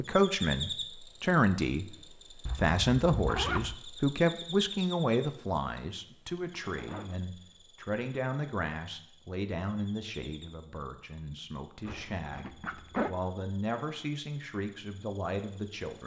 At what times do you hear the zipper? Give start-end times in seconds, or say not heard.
2.5-3.8, 6.7-7.2, 11.8-13.1.